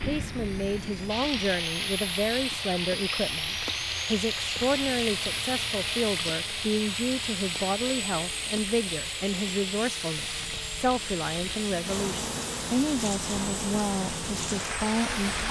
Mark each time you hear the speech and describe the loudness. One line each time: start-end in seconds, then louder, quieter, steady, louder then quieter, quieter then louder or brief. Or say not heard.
0.0-15.4 steady.